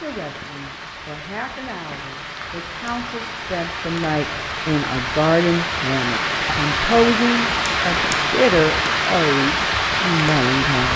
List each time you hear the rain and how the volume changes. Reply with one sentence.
You can hear the rain from 0.0 to 10.9 s, getting louder.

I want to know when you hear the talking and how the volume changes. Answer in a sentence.
The talking can be heard from 0.0 to 10.9 s, getting louder.